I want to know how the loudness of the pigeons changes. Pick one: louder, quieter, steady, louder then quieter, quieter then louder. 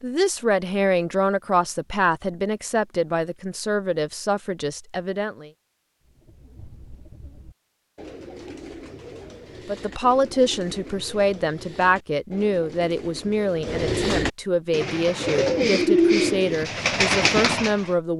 louder.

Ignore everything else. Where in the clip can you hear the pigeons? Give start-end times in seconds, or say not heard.
6.0-17.9.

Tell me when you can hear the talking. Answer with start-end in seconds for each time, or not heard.
0.0-5.5, 9.7-18.1.